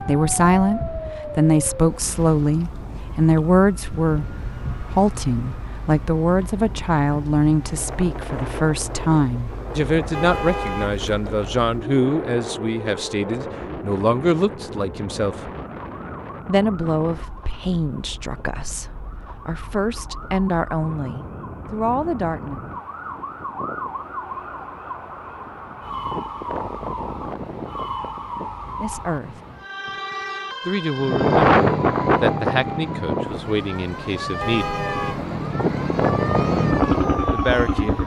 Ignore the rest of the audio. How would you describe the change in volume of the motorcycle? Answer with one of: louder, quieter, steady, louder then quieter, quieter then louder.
quieter then louder.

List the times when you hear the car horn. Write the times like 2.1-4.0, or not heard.
10.1-11.1, 34.4-35.3.